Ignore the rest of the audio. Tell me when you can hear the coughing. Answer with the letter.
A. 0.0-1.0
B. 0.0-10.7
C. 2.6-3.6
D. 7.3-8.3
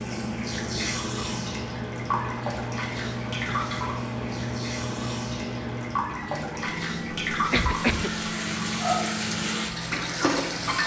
D.